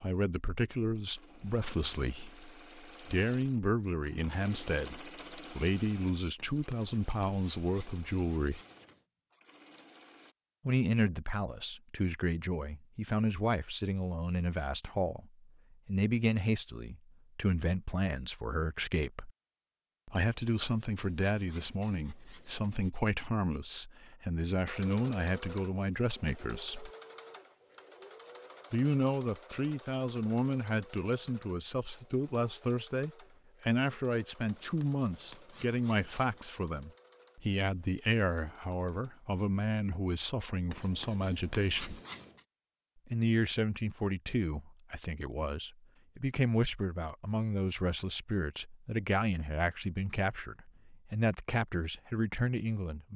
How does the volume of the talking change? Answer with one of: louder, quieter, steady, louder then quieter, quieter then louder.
steady.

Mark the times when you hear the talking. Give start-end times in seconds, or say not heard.
0.0-8.6, 10.7-19.3, 20.1-26.9, 28.7-42.0, 43.0-53.1.